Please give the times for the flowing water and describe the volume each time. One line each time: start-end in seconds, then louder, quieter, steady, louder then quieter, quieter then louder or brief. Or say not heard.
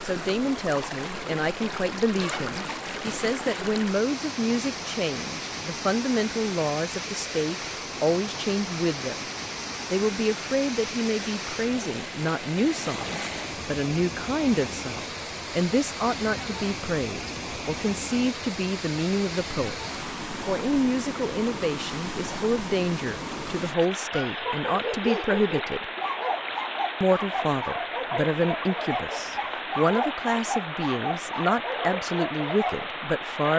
0.0-33.5 steady.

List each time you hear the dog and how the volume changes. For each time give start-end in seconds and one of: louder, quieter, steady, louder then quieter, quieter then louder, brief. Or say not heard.
23.8-32.9 steady.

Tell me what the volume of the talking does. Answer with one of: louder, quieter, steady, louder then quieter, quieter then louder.
steady.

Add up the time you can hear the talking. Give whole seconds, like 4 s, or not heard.
31 s.